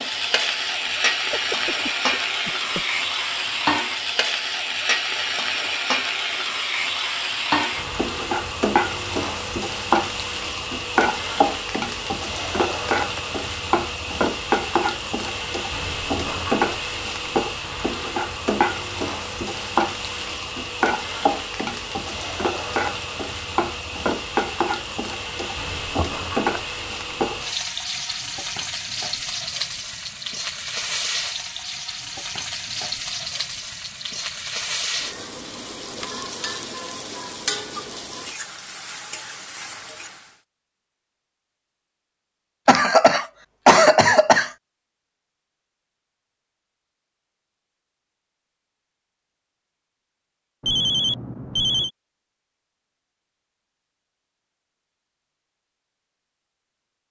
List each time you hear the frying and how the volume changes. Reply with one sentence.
The frying can be heard from 0.0 to 40.4 s, getting quieter.